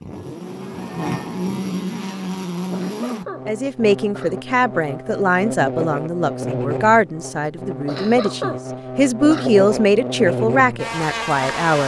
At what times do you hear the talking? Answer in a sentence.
You can hear the talking from 3.5 to 11.8 s.